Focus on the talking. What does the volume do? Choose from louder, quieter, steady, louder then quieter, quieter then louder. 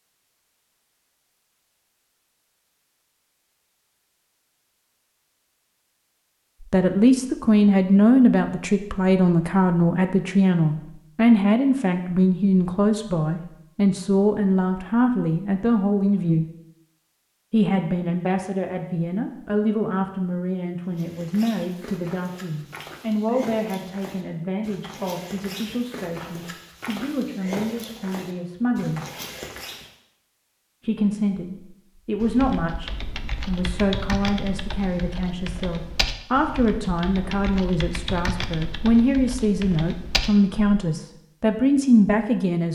quieter then louder.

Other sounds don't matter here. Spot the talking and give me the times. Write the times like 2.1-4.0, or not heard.
6.7-16.4, 17.5-29.0, 30.8-42.6.